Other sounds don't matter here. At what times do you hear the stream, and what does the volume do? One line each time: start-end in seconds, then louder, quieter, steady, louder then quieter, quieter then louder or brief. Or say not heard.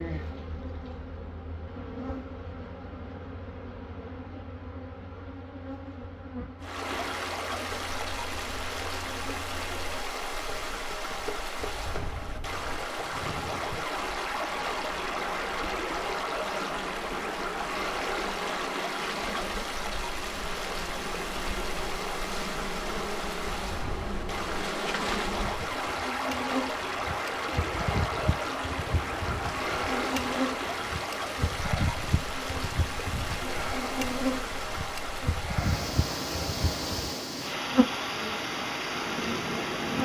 6.6-40.0 steady.